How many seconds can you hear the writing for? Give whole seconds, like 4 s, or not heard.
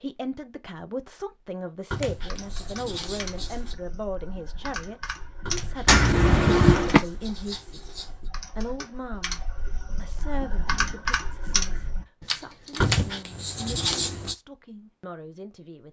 6 s.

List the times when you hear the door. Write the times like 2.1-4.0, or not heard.
5.8-7.0.